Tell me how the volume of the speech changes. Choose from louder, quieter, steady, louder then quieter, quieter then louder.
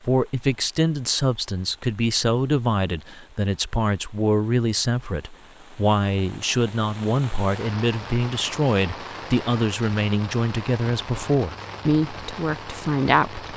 steady.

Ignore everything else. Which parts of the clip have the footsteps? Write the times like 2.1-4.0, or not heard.
not heard.